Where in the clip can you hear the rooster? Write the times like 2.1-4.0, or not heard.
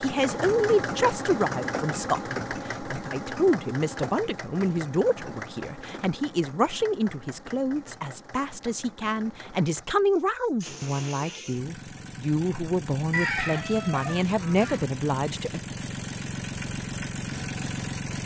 13.1-14.8.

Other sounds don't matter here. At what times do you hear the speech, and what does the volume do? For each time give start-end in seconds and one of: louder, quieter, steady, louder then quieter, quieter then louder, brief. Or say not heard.
0.0-15.6 steady.